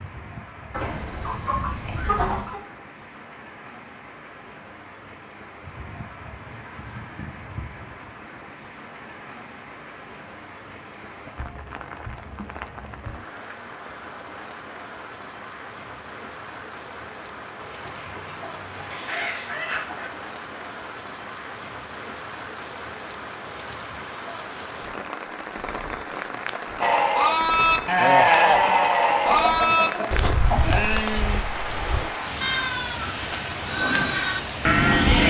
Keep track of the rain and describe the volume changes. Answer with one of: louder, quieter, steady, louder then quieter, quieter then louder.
louder.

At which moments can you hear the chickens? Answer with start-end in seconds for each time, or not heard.
0.7-2.6, 17.6-20.1, 29.1-30.8.